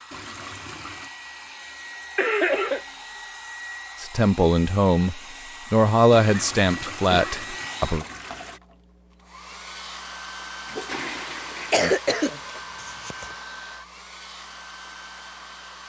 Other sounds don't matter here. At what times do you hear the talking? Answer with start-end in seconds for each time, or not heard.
4.0-8.1.